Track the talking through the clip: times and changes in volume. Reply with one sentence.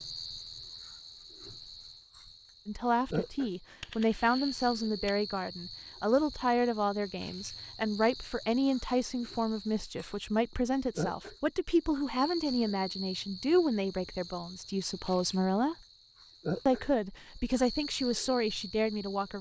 The talking can be heard from 2.6 to 15.8 s, at a steady volume; and briefly from 16.6 to 19.3 s.